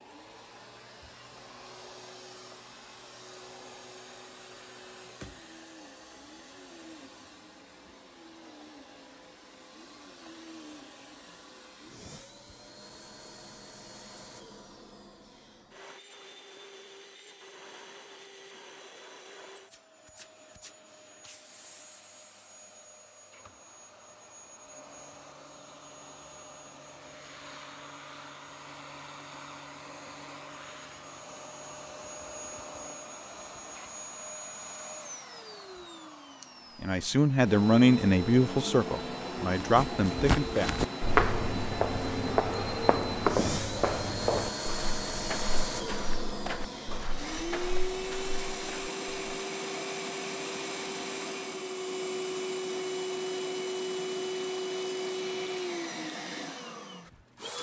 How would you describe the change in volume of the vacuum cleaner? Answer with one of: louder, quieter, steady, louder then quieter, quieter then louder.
louder.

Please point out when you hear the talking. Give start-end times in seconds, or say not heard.
36.8-40.8.